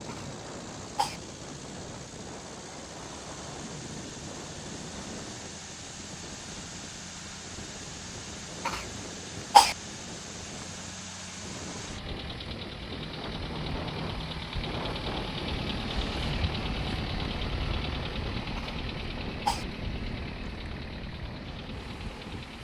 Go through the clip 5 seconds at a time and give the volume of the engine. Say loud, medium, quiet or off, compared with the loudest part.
medium, medium, loud, loud, medium.